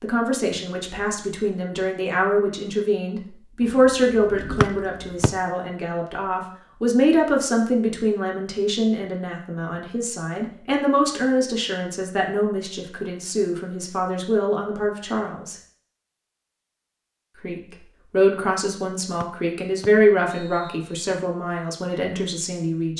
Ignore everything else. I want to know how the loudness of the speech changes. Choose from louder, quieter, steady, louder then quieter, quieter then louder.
steady.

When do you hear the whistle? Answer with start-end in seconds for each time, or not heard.
4.6-5.3, 19.2-20.9.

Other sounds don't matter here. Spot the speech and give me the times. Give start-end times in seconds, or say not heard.
0.0-15.6, 17.4-22.9.